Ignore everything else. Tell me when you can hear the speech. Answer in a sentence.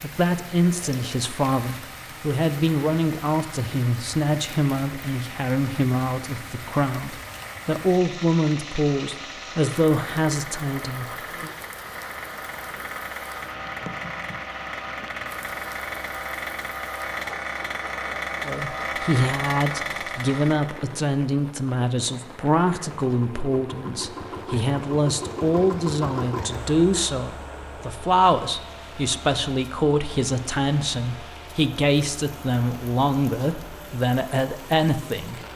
The speech can be heard from 0.0 to 11.5 s and from 18.4 to 35.4 s.